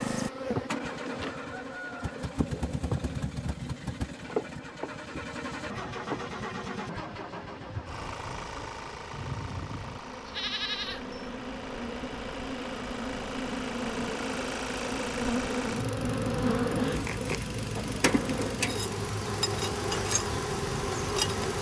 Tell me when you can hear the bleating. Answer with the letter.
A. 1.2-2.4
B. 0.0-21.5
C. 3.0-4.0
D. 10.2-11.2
D.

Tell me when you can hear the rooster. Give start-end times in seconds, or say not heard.
1.2-2.4.